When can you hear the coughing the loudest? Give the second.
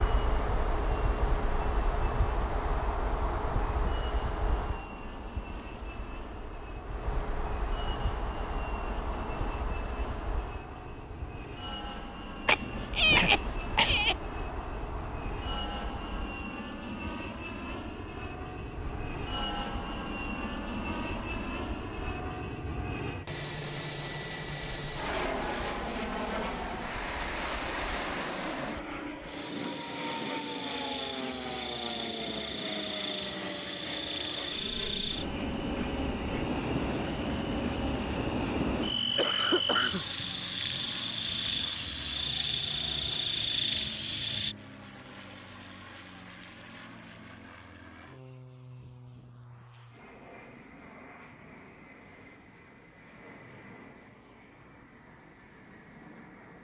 13 s.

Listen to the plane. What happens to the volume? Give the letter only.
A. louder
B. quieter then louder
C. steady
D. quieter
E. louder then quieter
E.